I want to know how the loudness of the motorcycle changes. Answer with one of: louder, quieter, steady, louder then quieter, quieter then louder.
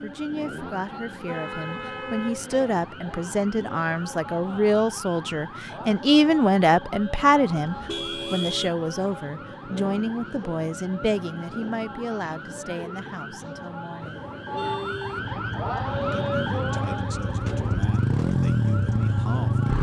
louder.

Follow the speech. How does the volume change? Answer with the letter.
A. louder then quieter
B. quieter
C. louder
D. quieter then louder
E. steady
A.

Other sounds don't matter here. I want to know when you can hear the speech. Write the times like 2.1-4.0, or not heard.
0.0-14.2, 16.1-19.7.